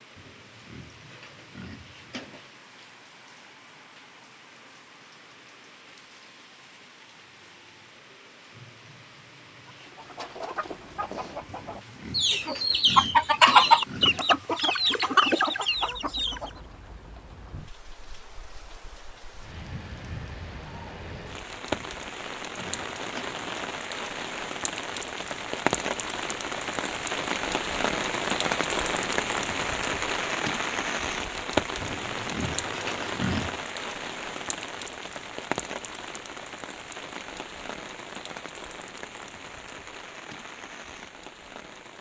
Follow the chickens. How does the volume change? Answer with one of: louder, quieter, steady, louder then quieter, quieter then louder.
louder then quieter.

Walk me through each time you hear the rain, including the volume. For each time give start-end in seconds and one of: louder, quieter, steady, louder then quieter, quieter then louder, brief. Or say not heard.
0.0-41.9 louder then quieter.